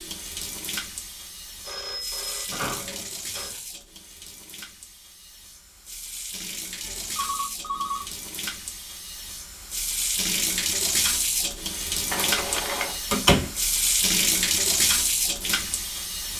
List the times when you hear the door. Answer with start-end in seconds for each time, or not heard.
2.5-3.6, 13.1-13.5.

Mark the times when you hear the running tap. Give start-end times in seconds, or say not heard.
0.0-16.3.